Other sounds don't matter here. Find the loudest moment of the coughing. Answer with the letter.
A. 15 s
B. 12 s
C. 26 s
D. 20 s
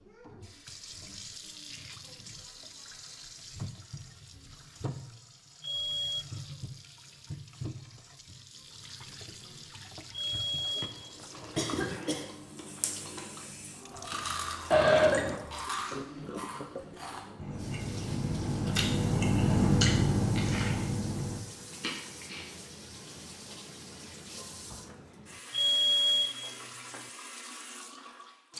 A.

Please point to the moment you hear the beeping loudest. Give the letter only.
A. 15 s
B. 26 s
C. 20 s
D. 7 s
B.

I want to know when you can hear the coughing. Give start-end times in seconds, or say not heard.
11.6-12.2, 14.7-15.4.